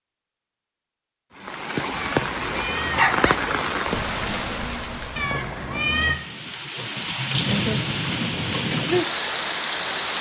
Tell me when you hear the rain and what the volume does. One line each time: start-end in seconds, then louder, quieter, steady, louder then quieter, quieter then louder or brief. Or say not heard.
1.4-10.1 quieter then louder.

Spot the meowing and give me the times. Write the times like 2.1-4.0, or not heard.
1.9-3.4, 5.2-6.2.